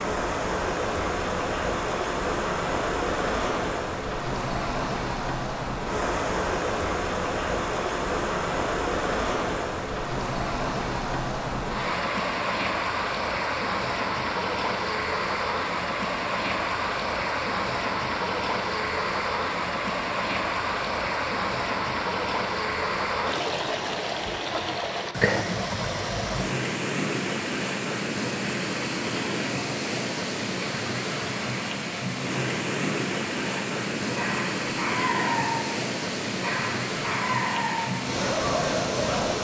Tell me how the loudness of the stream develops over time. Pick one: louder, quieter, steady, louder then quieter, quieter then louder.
steady.